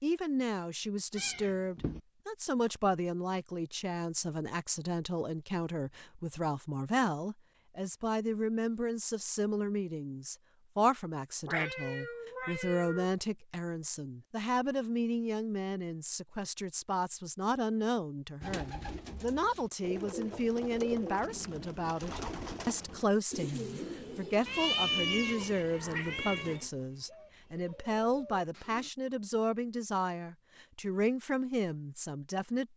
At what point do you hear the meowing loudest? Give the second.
25 s.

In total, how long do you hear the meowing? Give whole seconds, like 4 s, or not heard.
5 s.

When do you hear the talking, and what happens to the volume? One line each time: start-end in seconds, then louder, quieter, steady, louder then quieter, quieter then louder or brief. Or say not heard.
0.0-32.7 steady.